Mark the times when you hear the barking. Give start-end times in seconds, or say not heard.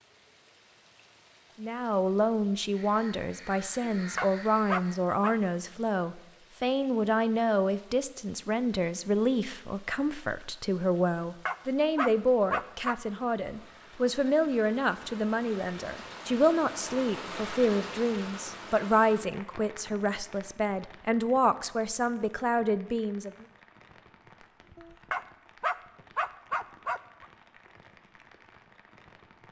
4.0-5.3, 11.2-12.9, 24.8-27.2.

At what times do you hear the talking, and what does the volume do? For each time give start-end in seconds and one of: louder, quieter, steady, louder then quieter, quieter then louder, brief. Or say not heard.
1.6-23.4 steady.